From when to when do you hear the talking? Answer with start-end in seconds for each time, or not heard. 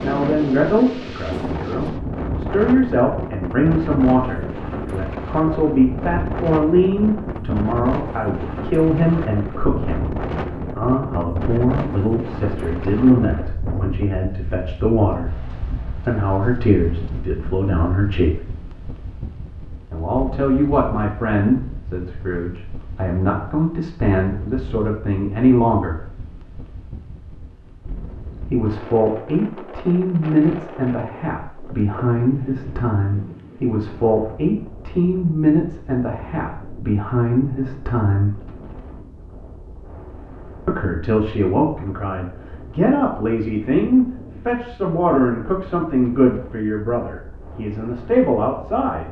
0.0-18.4, 19.9-26.0, 28.5-38.4, 40.6-49.0.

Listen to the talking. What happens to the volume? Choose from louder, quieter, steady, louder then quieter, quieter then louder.
steady.